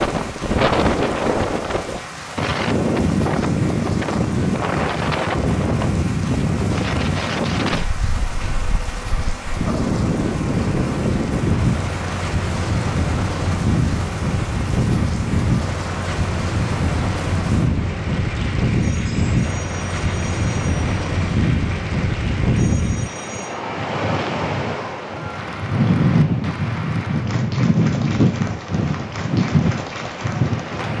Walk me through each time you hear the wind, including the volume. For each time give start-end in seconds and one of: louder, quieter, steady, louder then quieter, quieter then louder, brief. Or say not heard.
0.0-30.9 steady.